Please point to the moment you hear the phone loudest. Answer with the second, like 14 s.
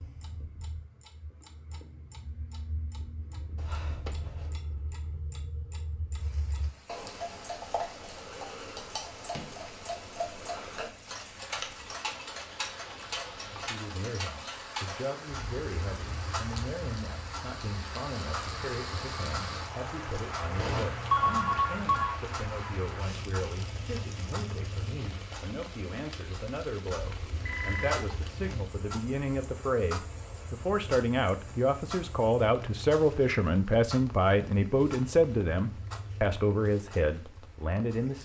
21 s.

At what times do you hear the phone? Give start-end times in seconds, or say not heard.
3.5-4.6, 20.6-22.1, 27.4-28.1.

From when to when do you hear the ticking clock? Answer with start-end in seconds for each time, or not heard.
0.0-38.1.